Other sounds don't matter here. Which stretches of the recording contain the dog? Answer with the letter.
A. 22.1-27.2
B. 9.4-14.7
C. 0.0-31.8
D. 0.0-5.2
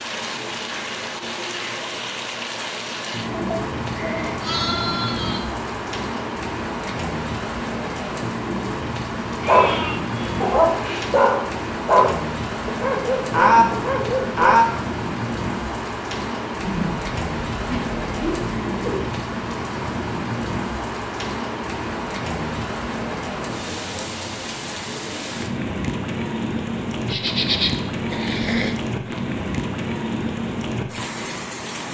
B.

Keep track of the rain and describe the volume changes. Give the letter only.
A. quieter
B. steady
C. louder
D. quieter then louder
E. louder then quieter
B.